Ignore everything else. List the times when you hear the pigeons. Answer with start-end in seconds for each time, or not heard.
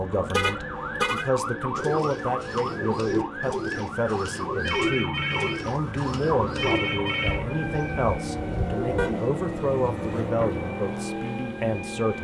1.8-9.2.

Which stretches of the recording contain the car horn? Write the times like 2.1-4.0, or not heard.
0.3-1.3, 8.9-10.3.